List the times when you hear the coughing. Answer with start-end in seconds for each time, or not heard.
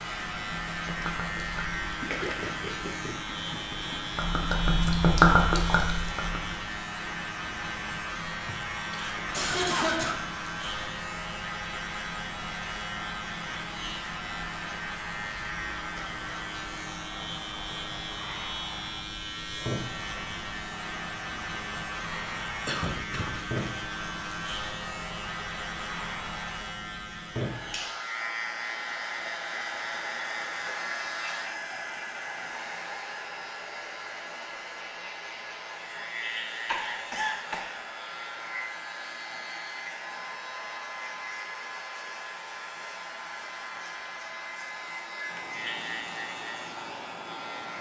8.4-10.2, 22.6-23.4, 36.6-37.7.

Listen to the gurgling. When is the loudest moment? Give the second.
5 s.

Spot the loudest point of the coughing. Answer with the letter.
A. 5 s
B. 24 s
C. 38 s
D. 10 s
D.